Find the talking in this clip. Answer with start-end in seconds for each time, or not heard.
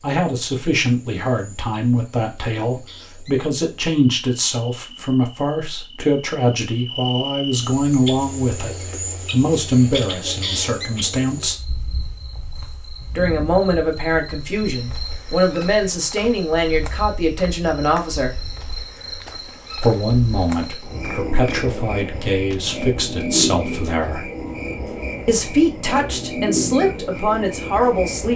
0.0-11.6, 13.2-18.4, 19.8-24.3, 25.2-28.3.